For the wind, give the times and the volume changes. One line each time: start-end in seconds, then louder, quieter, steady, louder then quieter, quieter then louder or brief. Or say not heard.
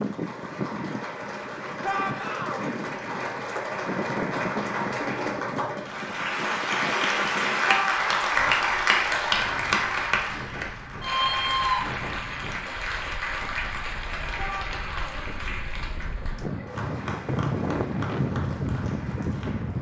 0.0-19.7 quieter then louder.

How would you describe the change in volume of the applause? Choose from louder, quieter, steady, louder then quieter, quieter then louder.
louder then quieter.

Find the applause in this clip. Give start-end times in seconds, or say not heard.
0.0-19.7.